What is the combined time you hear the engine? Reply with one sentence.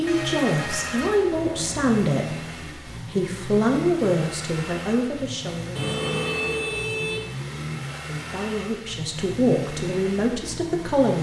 You can hear the engine for 11 seconds altogether.